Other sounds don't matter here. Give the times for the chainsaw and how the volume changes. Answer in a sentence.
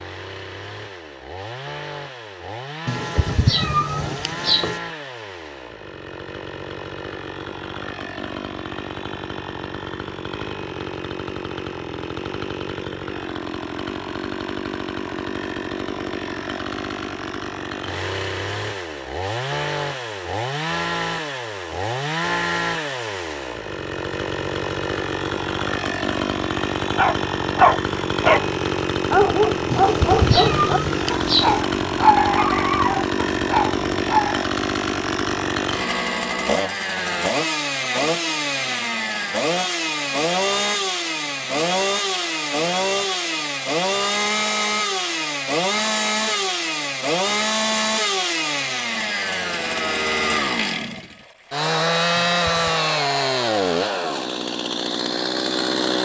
The chainsaw can be heard from 0.0 to 56.0 s, getting louder.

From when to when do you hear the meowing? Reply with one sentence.
You can hear the meowing from 2.9 to 4.8 s, from 29.7 to 31.6 s and from 52.1 to 52.8 s.